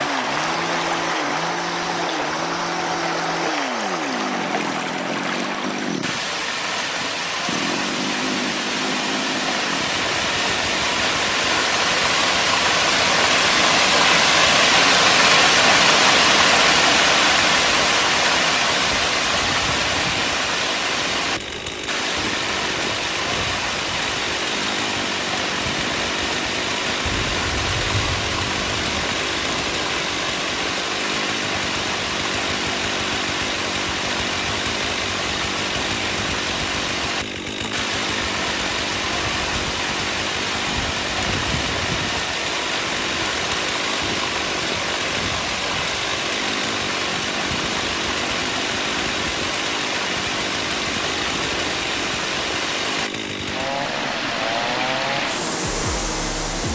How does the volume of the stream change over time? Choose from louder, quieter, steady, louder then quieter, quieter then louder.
louder then quieter.